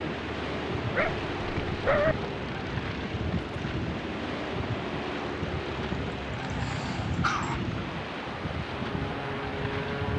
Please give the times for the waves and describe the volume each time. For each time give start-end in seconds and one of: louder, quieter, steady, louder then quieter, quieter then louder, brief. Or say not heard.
0.0-10.1 steady.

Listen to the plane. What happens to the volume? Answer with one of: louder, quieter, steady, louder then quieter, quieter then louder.
steady.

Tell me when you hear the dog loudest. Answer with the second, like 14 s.
2 s.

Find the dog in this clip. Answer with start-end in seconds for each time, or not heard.
0.9-2.1, 6.3-7.6.